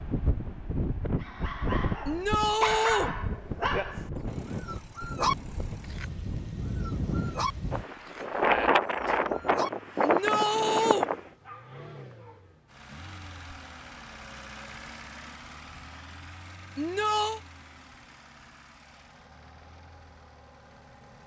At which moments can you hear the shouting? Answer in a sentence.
The shouting can be heard from 2.0 to 3.1 s, from 10.0 to 11.1 s and from 16.8 to 17.4 s.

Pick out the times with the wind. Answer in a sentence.
The wind can be heard from 0.0 to 11.2 s.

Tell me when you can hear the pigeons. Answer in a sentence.
You can't hear the pigeons here.